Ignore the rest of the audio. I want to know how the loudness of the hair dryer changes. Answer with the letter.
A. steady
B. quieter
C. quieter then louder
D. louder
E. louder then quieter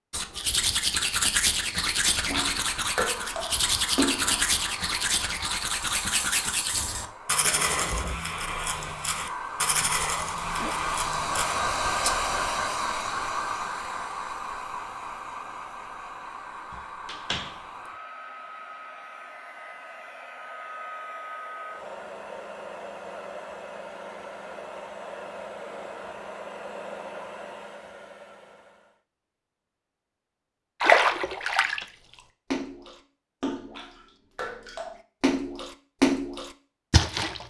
E.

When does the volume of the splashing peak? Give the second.
31 s.